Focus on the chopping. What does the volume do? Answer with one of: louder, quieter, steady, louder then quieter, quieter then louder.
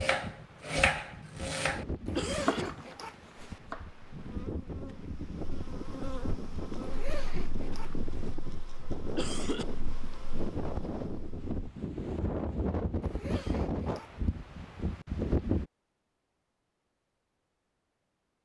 quieter.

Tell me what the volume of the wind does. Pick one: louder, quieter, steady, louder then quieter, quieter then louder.
louder.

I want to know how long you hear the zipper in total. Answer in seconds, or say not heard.
4 s.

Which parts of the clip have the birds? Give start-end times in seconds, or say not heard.
not heard.